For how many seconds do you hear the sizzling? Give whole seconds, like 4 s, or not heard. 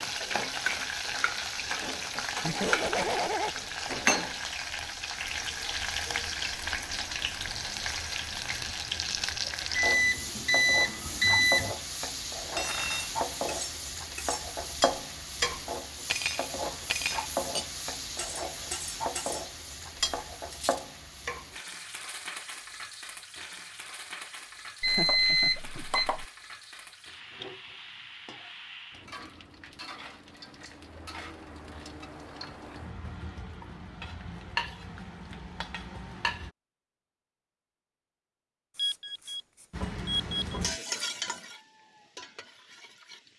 40 s.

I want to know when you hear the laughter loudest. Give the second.
3 s.